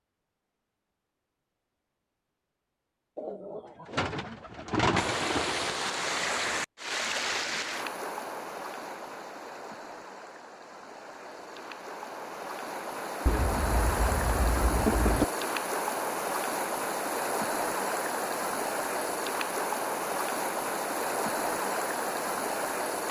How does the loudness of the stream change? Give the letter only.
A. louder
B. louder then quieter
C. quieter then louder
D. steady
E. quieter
C.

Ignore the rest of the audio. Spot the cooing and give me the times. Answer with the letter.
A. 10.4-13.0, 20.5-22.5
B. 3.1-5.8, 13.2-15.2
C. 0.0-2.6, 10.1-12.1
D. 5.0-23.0
B.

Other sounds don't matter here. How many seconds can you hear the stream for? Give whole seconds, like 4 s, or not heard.
18 s.